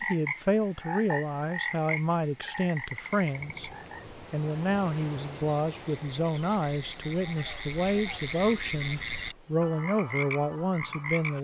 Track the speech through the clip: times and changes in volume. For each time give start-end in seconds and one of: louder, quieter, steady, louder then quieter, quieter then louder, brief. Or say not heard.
0.0-11.3 steady.